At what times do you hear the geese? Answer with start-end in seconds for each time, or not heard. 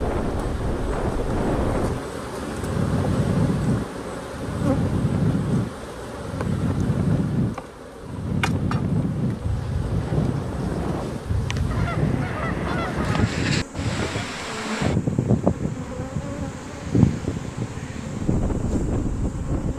11.7-13.3.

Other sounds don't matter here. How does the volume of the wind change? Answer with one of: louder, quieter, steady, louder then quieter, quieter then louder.
steady.